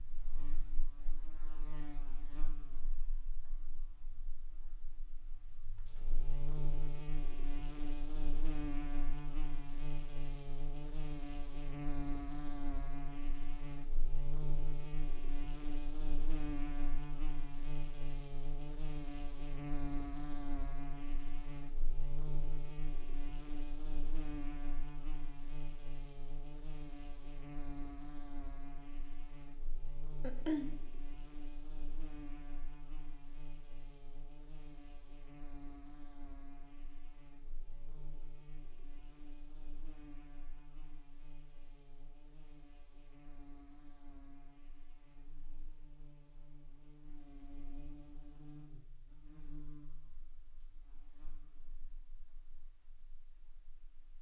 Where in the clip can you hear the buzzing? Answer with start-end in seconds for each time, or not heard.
0.0-54.1.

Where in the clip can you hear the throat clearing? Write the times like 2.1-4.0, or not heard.
30.2-30.7.